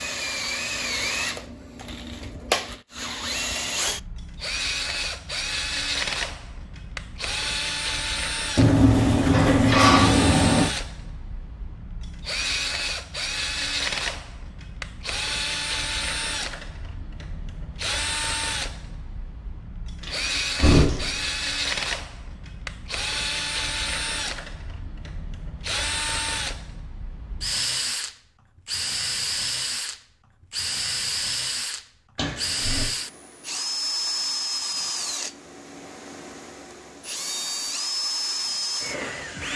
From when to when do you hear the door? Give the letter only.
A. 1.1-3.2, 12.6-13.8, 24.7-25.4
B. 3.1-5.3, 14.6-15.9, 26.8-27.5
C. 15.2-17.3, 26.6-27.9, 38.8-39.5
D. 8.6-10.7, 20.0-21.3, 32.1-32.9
D.